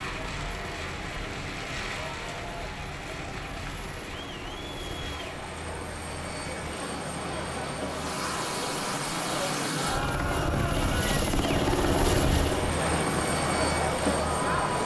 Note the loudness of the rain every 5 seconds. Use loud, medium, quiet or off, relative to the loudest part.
loud, loud, off.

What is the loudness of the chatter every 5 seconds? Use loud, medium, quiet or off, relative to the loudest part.
quiet, medium, loud.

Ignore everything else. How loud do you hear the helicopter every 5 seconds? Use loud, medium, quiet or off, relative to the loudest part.
quiet, medium, loud.